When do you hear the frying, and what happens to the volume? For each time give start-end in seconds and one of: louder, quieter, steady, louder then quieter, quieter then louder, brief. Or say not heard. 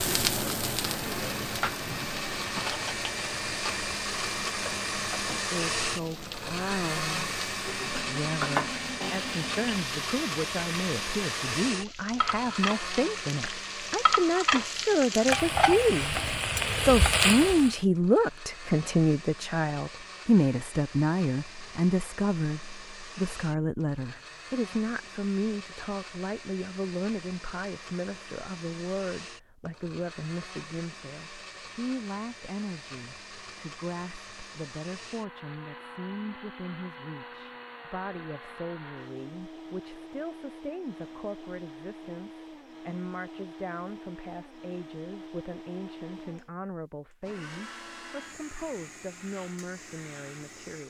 0.0-17.8 quieter then louder.